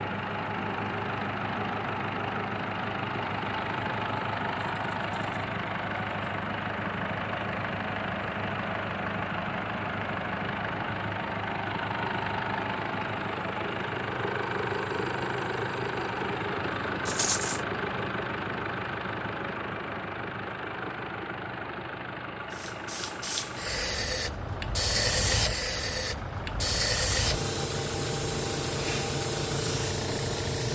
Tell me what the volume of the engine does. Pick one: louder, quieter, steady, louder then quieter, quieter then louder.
quieter.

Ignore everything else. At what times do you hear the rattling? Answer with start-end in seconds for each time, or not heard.
4.5-6.2, 17.1-17.6.